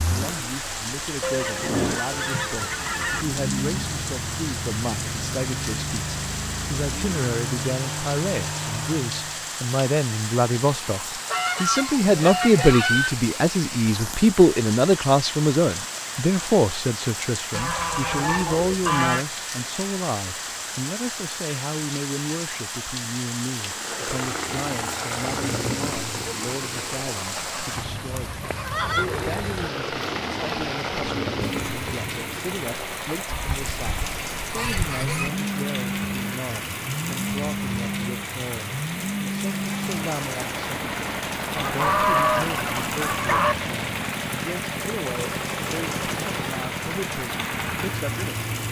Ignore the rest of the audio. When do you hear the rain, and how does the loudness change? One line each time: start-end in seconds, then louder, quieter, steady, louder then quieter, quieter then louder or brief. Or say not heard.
0.0-48.6 steady.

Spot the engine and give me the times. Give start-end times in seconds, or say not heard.
0.0-9.5, 23.6-48.6.